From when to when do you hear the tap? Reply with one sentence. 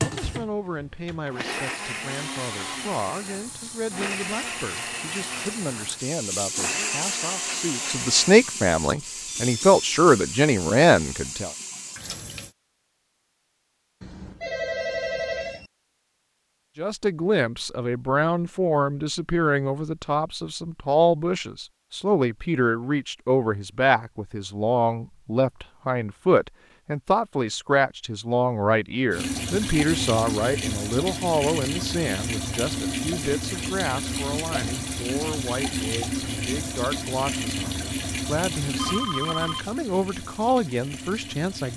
The tap can be heard from 0.0 to 12.6 s and from 29.1 to 41.7 s.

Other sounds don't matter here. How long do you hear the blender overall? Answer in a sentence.
You can hear the blender for 8 seconds altogether.